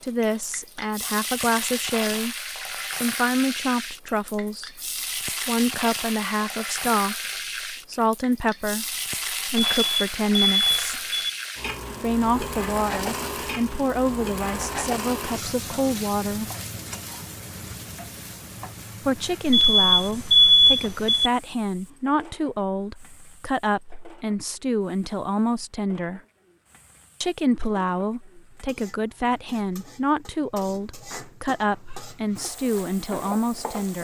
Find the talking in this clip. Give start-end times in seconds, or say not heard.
0.0-4.8, 5.5-11.0, 12.0-16.5, 19.1-26.2, 27.2-33.9.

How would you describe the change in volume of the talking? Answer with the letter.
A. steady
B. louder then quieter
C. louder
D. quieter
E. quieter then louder
A.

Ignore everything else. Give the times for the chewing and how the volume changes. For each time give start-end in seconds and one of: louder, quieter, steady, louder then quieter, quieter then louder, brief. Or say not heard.
not heard.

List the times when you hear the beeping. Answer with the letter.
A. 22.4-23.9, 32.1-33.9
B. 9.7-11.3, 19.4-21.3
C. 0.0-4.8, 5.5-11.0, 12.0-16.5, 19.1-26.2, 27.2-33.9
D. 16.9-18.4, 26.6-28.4
B.